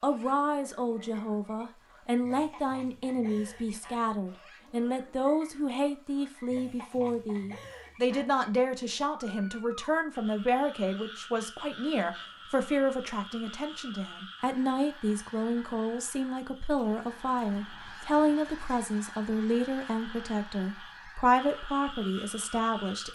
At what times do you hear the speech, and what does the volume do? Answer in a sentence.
You can hear the speech from 0.0 to 23.0 s, at a steady volume.